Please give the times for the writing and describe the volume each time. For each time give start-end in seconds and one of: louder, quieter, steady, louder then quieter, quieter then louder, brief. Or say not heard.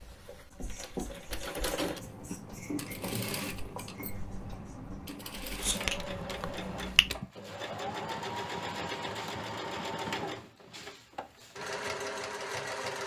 0.5-7.2 quieter then louder.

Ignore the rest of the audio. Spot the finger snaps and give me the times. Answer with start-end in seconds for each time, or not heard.
5.8-7.1.